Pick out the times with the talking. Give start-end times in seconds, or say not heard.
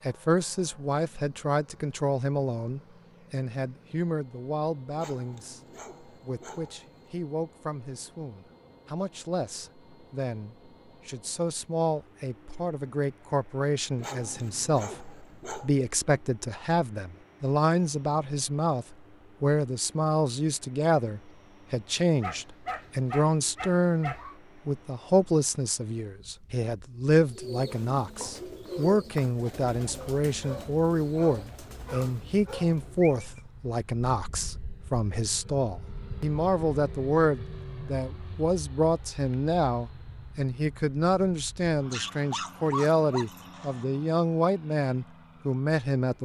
0.1-46.2.